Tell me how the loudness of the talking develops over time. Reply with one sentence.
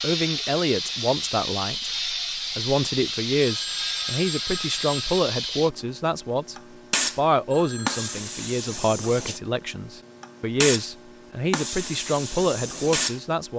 The volume of the talking stays about the same.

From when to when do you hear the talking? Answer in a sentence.
The talking can be heard from 0.0 to 6.5 s and from 7.2 to 13.5 s.